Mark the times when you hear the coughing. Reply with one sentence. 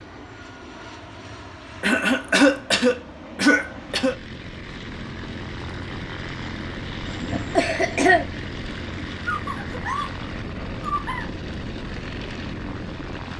The coughing can be heard from 1.8 to 4.2 s and from 7.0 to 8.2 s.